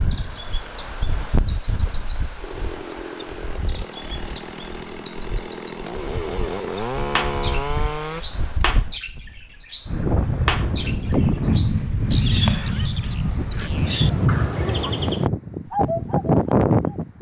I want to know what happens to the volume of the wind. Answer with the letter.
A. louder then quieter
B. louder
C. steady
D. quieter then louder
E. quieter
D.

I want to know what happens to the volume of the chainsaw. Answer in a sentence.
The loudness of the chainsaw goes up.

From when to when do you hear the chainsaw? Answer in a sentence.
You can hear the chainsaw from 2.4 to 8.2 s.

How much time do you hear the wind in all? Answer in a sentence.
You can hear the wind for 17 seconds altogether.